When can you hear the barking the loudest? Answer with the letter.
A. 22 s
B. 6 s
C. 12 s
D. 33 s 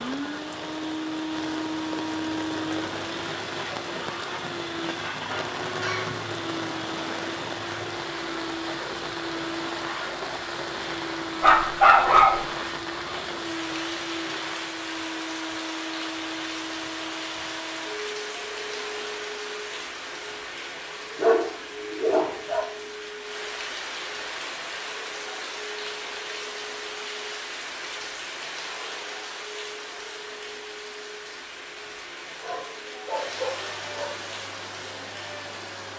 C.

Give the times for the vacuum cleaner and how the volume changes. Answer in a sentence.
You can hear the vacuum cleaner from 0.0 to 35.9 s, getting quieter.